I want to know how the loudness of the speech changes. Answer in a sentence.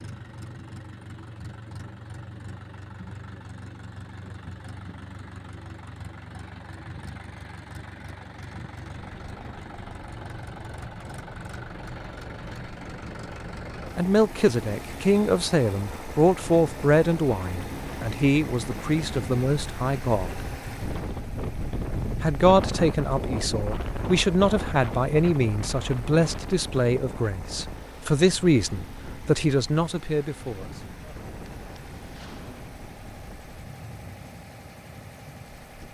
The volume of the speech stays about the same.